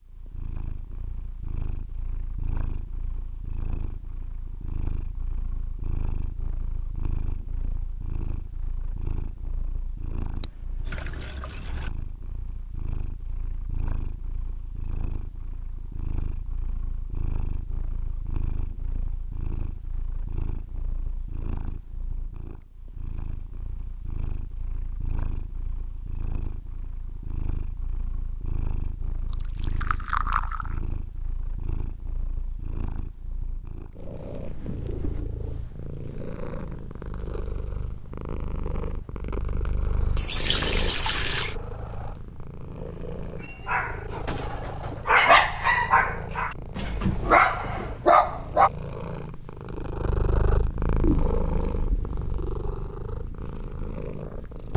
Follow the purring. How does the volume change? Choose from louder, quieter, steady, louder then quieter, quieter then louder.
louder.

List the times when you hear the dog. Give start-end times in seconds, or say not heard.
43.4-48.7.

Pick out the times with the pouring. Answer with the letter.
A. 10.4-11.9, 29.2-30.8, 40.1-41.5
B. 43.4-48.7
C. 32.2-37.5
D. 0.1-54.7
A.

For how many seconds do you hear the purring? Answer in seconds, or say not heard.
55 s.